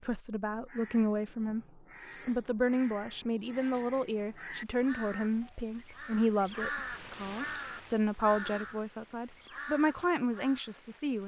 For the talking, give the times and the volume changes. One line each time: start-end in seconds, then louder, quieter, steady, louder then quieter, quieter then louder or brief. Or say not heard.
0.0-1.6 brief
2.2-11.2 steady.